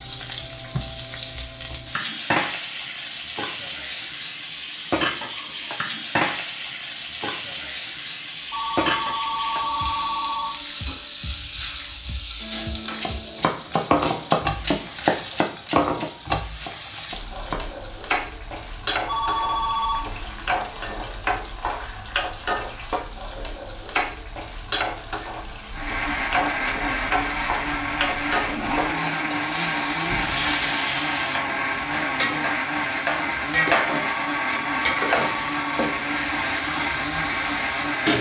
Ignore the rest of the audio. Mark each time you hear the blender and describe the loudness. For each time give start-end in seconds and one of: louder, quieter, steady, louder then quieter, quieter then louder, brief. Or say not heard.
25.7-38.1 steady.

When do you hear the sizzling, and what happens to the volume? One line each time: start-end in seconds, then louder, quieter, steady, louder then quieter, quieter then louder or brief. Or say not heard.
0.0-38.1 steady.